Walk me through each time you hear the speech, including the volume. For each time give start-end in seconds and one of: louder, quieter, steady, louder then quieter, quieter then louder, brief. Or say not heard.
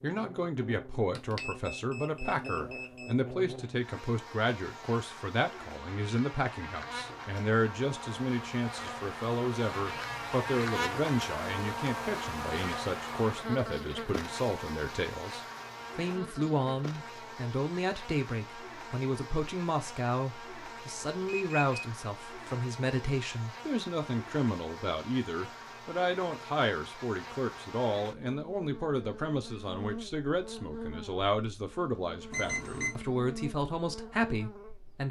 0.0-35.0 steady.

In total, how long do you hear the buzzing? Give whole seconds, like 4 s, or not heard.
35 s.